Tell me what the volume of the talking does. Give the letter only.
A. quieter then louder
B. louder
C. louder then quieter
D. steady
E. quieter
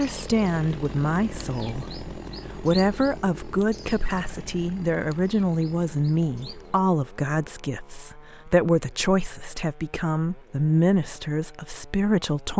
D.